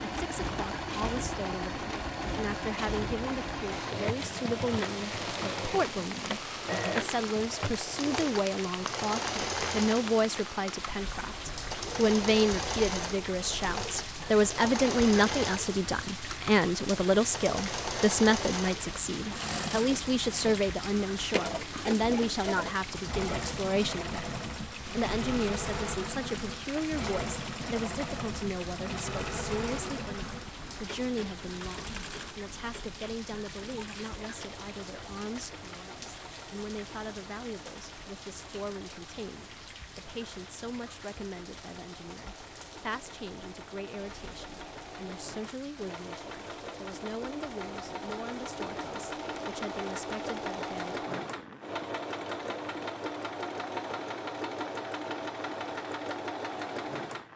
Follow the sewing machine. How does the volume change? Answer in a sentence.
The loudness of the sewing machine goes down, then up.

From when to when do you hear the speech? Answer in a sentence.
You can hear the speech from 0.0 to 51.1 s.